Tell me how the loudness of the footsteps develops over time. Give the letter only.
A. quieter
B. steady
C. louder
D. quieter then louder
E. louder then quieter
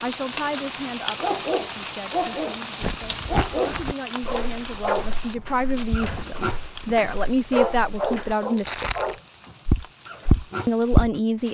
D.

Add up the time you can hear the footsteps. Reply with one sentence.
You can hear the footsteps for 8 seconds altogether.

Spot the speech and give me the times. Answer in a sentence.
The speech can be heard from 0.0 to 8.9 s and from 10.7 to 11.4 s.